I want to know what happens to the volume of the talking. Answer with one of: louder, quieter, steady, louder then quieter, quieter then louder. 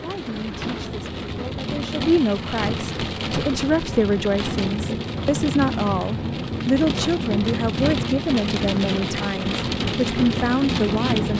steady.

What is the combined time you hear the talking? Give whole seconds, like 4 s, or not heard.
11 s.